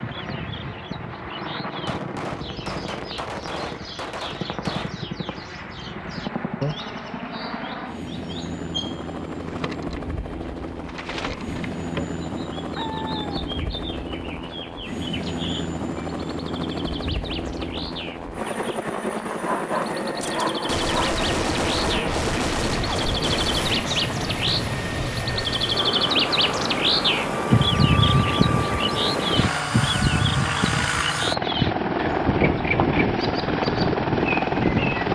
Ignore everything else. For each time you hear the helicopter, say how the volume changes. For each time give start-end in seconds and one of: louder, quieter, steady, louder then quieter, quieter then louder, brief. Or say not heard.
0.0-35.1 louder.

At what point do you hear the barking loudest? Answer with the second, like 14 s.
20 s.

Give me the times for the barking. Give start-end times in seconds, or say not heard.
12.7-13.3, 19.4-21.1.